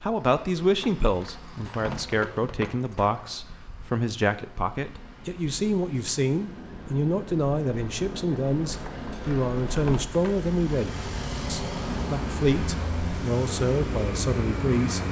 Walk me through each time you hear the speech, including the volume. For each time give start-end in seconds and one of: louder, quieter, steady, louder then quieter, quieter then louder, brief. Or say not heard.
0.0-15.0 steady.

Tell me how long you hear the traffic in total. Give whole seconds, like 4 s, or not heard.
15 s.